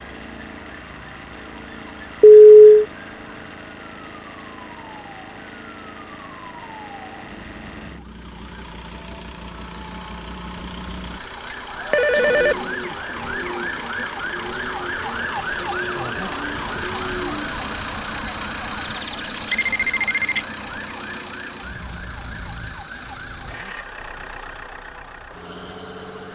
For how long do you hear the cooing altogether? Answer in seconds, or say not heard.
6 s.